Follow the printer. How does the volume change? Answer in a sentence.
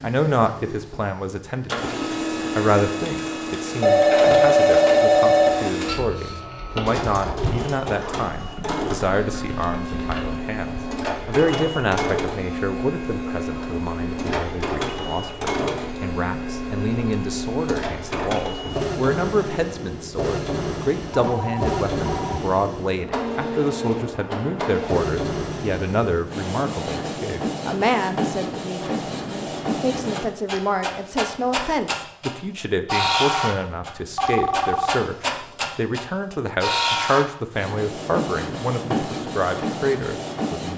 The loudness of the printer stays about the same.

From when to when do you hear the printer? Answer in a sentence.
The printer can be heard from 0.0 to 40.7 s.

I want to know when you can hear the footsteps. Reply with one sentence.
The footsteps can't be heard in this clip.